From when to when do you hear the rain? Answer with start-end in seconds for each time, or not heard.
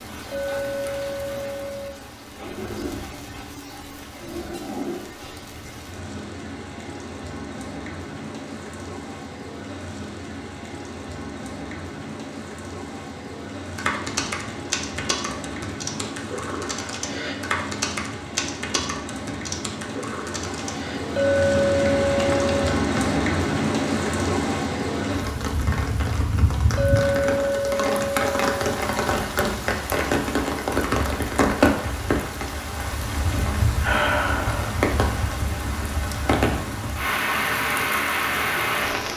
0.0-39.1.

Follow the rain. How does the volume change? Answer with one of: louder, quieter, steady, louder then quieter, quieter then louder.
louder.